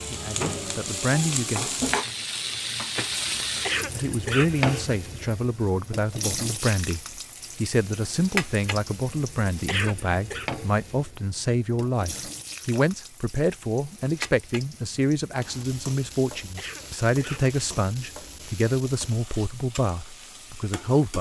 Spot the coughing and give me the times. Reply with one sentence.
You can hear the coughing from 3.6 to 5.0 s, from 9.7 to 10.5 s and from 16.6 to 17.6 s.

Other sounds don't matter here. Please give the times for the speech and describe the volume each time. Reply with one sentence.
The speech can be heard briefly from 0.0 to 1.8 s; and from 4.0 to 21.1 s, at a steady volume.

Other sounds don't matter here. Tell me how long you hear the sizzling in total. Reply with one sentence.
The sizzling can be heard for 21 seconds in total.